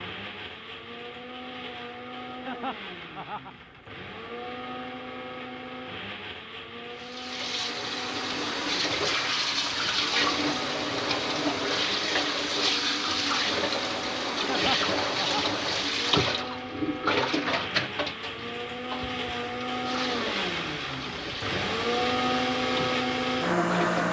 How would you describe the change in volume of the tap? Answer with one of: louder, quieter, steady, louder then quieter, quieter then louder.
quieter.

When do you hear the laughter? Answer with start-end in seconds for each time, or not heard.
2.5-3.8, 14.4-15.6.